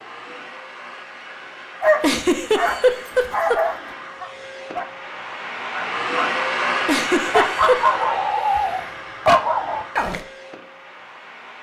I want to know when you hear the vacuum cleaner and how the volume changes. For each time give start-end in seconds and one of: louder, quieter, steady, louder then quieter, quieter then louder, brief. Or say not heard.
0.0-11.5 louder then quieter.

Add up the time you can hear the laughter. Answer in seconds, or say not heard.
3 s.